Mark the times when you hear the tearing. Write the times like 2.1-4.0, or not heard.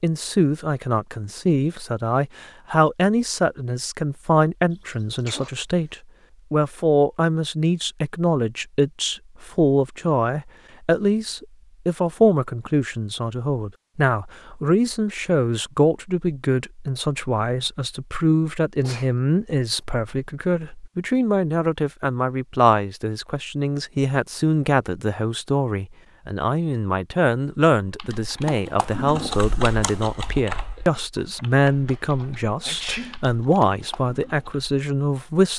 not heard.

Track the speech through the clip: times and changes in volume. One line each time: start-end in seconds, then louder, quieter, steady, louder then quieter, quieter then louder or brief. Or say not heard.
0.0-35.5 steady.